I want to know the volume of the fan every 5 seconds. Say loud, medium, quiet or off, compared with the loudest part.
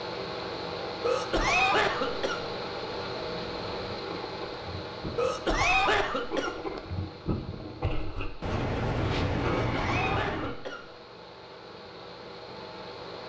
loud, medium, medium.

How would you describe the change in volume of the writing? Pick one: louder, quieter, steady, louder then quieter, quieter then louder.
louder.